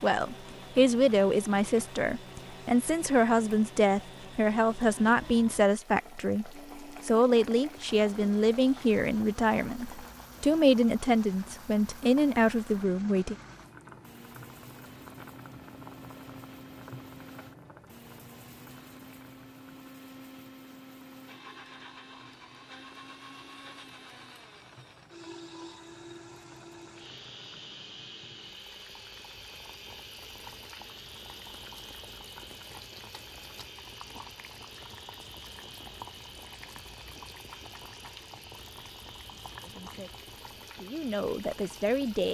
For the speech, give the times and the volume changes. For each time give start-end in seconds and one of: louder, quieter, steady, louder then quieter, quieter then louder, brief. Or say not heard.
0.0-13.3 steady
39.6-42.2 brief.